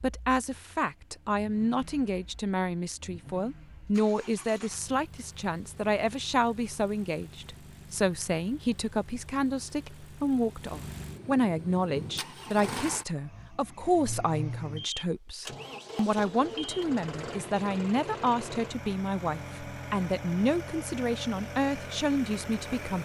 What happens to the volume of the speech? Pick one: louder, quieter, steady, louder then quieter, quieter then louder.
steady.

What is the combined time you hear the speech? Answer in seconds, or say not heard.
23 s.